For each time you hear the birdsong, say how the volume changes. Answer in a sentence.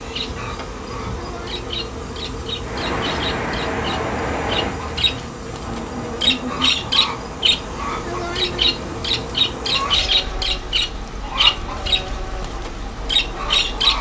The birdsong can be heard from 0.0 to 13.9 s, getting louder.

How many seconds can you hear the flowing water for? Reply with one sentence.
You can hear the flowing water for 11 seconds altogether.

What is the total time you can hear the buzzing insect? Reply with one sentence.
You can hear the buzzing insect for 14 seconds altogether.